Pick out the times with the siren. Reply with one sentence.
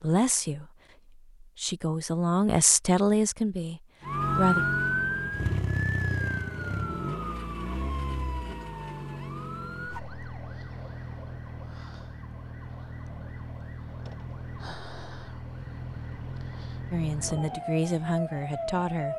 You can hear the siren from 4.0 to 19.1 s.